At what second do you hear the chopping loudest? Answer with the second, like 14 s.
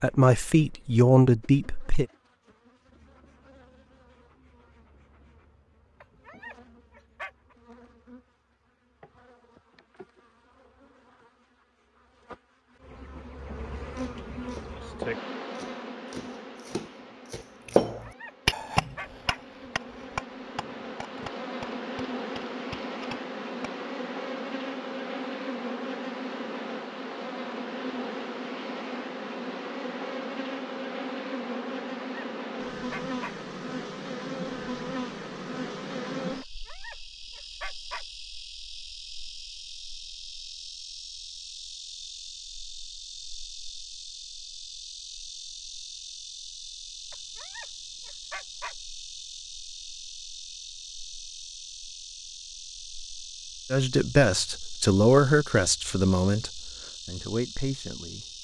18 s.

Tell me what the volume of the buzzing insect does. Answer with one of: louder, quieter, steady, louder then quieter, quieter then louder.
louder then quieter.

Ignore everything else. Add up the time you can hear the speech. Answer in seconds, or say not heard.
7 s.